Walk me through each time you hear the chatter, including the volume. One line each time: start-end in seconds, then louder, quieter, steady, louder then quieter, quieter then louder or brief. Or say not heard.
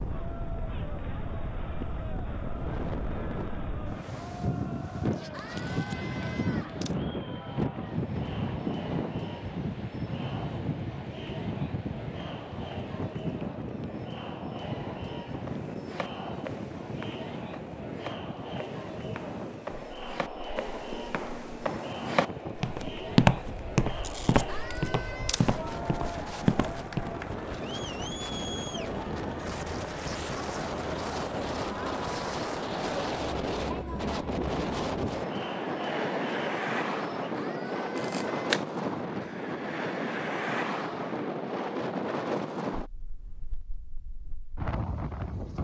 0.0-37.4 louder.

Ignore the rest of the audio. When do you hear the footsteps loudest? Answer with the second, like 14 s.
23 s.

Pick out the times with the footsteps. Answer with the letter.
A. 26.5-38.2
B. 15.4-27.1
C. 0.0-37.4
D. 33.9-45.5
B.